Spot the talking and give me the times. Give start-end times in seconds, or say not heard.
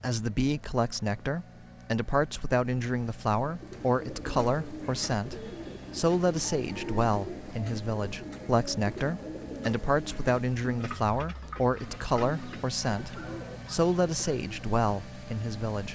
0.0-15.8.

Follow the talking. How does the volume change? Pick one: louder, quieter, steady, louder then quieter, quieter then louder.
steady.